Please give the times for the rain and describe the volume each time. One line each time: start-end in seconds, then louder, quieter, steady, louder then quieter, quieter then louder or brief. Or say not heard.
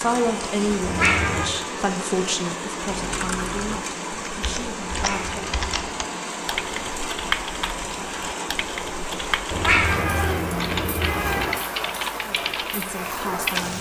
0.0-13.7 steady.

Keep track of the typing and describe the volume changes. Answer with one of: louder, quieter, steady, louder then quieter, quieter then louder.
louder.